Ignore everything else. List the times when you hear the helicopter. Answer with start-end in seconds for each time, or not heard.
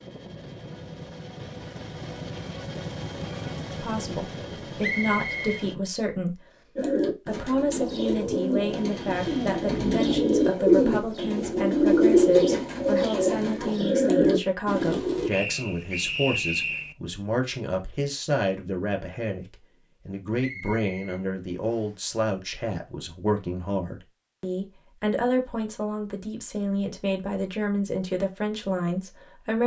0.0-5.8, 8.7-10.6.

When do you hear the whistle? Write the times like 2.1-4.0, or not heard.
4.8-5.7, 15.3-16.9, 20.4-21.9.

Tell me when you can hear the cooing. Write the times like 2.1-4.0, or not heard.
6.8-15.3.